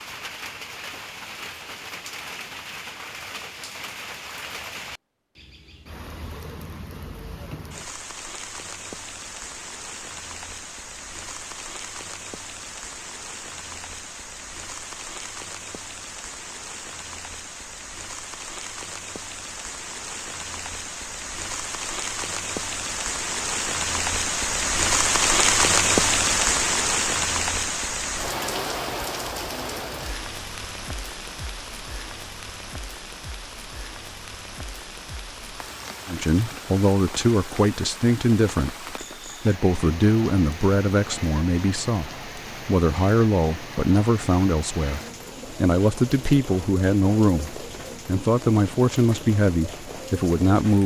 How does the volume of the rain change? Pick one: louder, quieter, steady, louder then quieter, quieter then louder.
louder then quieter.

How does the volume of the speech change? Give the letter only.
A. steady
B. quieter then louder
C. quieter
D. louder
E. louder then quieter
A.